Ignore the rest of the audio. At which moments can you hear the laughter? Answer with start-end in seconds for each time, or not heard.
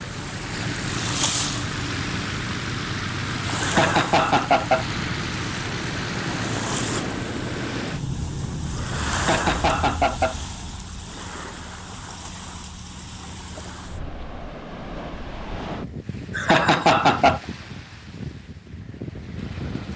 3.6-4.8, 9.1-10.3, 16.3-17.4.